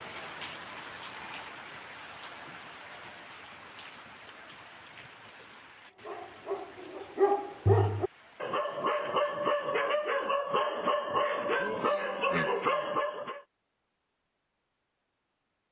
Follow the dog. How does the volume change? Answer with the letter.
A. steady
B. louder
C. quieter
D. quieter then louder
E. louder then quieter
A.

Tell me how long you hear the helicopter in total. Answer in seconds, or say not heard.
not heard.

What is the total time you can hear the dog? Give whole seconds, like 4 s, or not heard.
7 s.